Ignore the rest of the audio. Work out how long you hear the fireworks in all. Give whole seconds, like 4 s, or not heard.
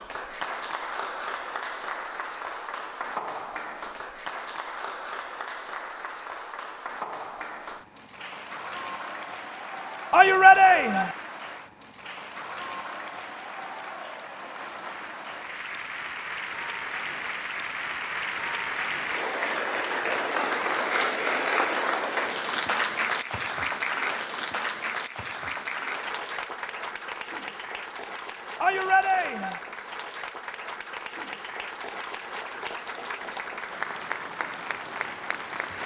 not heard.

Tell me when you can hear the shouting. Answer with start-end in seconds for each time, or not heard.
10.1-11.1, 28.6-29.6.